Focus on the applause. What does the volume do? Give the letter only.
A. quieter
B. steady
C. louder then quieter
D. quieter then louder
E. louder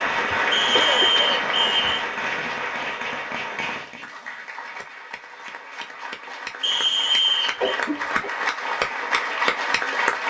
D.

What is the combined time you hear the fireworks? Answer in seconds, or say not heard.
4 s.